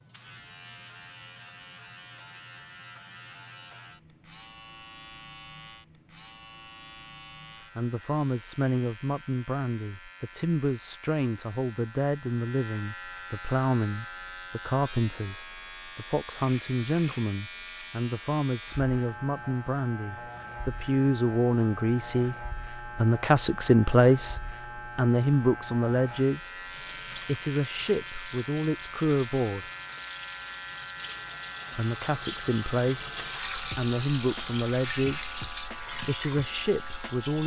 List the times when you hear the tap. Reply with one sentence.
You can hear the tap from 26.6 to 37.4 s.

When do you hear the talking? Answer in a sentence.
You can hear the talking from 7.8 to 29.7 s and from 31.8 to 37.4 s.